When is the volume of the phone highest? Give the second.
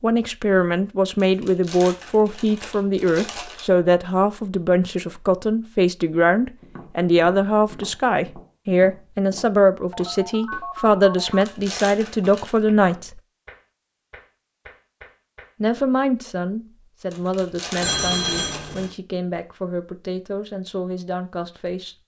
18 s.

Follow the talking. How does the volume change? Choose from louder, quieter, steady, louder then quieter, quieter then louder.
quieter.